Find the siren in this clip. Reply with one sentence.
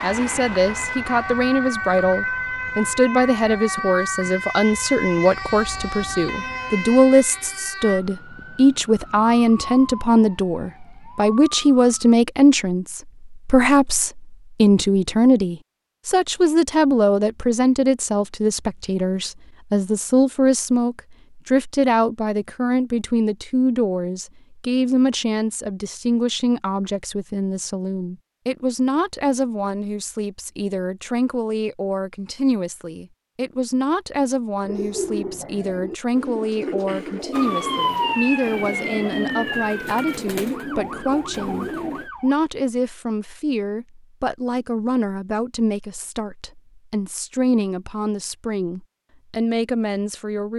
You can hear the siren from 0.0 to 12.2 s and from 37.3 to 42.4 s.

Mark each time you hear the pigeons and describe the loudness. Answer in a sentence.
You can hear the pigeons from 34.6 to 42.1 s, at a steady volume.